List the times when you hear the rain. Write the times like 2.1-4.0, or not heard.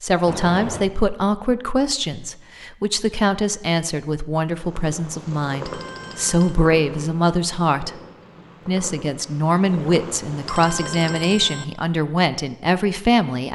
not heard.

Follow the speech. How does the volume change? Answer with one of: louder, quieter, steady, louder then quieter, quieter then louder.
steady.